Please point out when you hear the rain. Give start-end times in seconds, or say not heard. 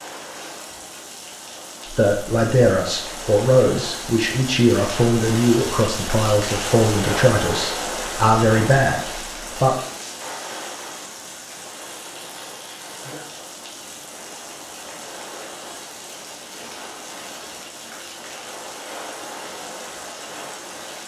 0.0-21.0.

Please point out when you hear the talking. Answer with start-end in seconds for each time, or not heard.
1.9-9.8.